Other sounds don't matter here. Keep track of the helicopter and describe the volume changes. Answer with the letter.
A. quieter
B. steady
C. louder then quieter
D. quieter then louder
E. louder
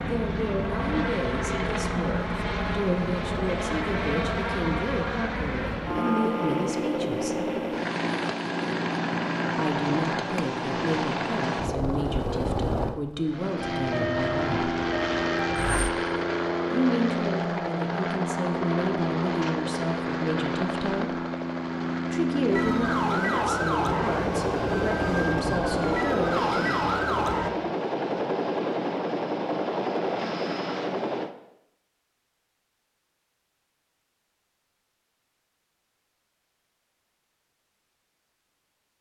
B.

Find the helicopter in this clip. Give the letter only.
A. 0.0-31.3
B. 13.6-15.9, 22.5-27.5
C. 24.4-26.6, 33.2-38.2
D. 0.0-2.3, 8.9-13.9
A.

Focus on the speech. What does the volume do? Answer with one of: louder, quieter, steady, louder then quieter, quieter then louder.
steady.